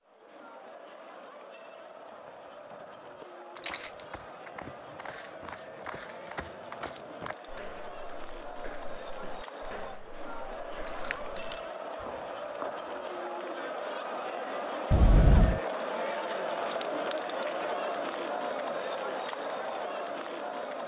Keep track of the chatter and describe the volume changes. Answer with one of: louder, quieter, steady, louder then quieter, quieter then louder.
louder.